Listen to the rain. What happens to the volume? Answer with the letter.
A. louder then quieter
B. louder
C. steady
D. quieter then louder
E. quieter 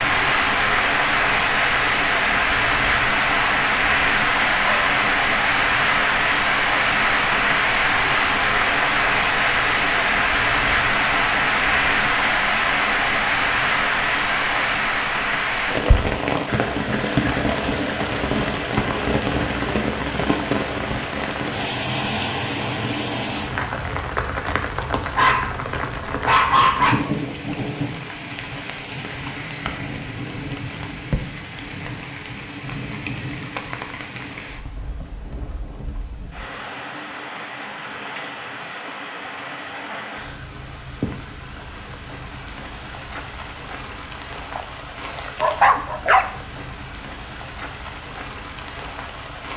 E.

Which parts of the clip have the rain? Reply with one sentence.
The rain can be heard from 0.0 to 49.5 s.